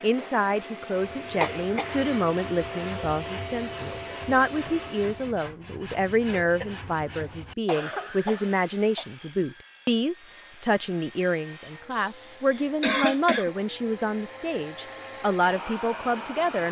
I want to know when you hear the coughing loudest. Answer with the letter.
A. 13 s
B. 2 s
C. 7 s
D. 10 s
A.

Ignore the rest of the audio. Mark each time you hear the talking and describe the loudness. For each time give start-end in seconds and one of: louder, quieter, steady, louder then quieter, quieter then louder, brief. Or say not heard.
0.0-16.6 steady.